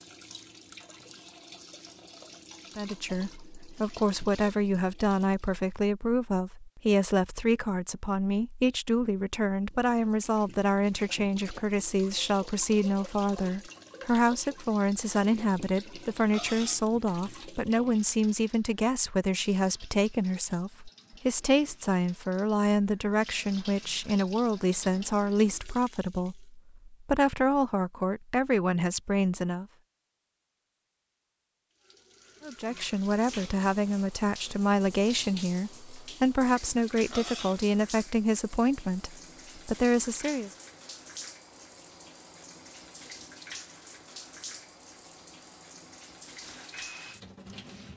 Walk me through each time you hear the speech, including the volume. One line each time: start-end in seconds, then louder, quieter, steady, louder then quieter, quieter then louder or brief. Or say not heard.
2.8-29.6 steady
32.4-40.5 steady.